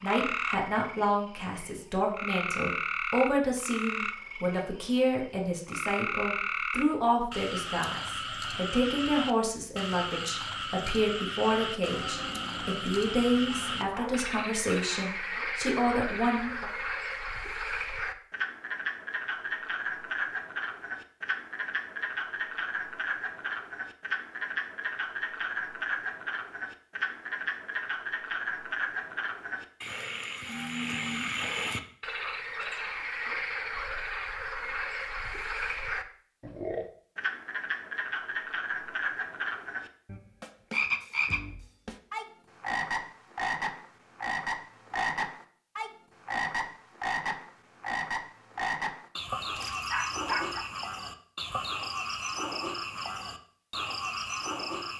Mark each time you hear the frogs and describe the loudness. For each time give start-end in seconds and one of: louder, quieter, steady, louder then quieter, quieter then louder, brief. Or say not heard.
0.0-54.9 steady.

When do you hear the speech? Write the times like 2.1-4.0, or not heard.
0.0-16.6.